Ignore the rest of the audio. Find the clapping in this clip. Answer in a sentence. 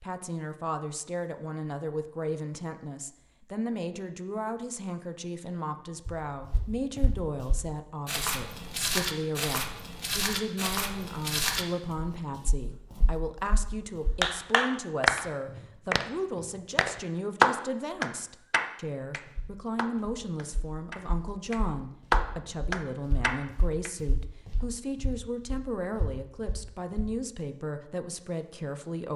The clapping can be heard from 14.2 to 23.9 s.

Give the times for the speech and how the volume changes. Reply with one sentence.
You can hear the speech from 0.0 to 29.1 s, at a steady volume.